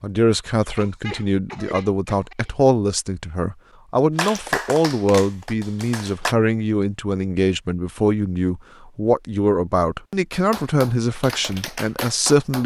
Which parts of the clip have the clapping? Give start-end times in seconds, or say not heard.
4.2-6.3, 10.3-12.6.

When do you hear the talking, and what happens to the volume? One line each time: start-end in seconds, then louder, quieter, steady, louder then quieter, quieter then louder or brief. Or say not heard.
0.0-12.6 steady.